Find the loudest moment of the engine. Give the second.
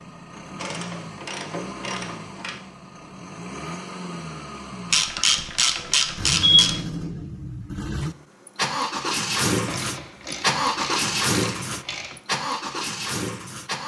11 s.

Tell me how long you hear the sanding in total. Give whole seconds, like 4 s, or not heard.
not heard.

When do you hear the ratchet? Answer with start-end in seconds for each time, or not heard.
0.6-2.6, 4.9-6.8, 9.7-12.2.